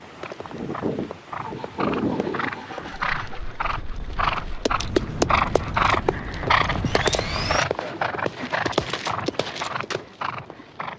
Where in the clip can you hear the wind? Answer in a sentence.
The wind can be heard from 0.0 to 7.7 s.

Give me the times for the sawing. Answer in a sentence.
The sawing can be heard from 1.4 to 3.4 s and from 6.8 to 7.7 s.